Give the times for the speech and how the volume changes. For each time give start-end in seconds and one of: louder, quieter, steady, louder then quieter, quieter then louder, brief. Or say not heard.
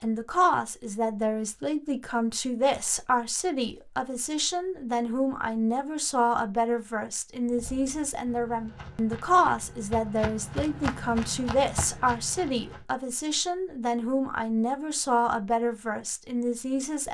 0.0-17.0 steady.